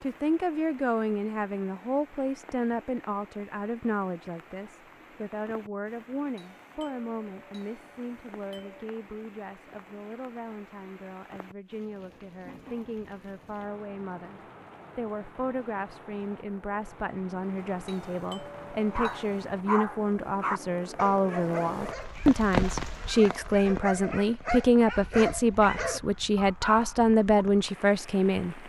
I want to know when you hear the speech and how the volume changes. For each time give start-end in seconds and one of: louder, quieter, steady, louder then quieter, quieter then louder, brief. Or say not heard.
0.0-28.6 quieter then louder.